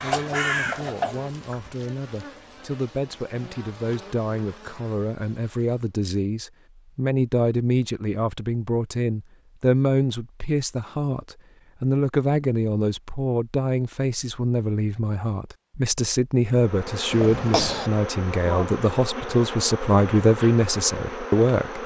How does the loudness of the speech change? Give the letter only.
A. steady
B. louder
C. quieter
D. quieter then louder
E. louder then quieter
B.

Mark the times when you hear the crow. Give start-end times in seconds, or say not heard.
0.0-1.8.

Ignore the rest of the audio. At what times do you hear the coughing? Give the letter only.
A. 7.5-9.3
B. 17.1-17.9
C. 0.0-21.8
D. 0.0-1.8
B.